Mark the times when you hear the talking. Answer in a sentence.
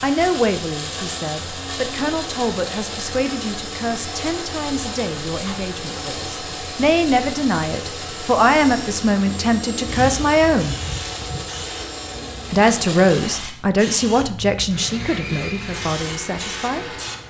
You can hear the talking from 0.0 to 10.8 s and from 12.5 to 16.9 s.